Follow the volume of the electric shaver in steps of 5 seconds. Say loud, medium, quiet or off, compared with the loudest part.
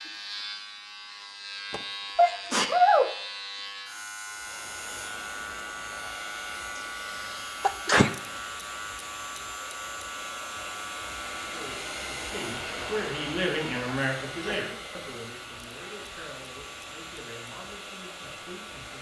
loud, loud, loud, medium.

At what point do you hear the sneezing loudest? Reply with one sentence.
The volume of the sneezing peaks at 3 seconds.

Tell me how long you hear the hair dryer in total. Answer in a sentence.
You can hear the hair dryer for 15 seconds altogether.